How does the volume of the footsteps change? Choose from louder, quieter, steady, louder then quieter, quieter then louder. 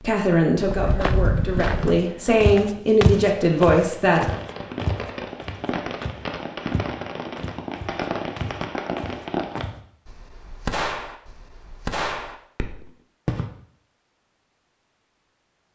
quieter.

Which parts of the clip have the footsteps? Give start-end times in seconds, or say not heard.
0.7-9.8.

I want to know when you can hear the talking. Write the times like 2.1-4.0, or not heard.
0.0-4.2.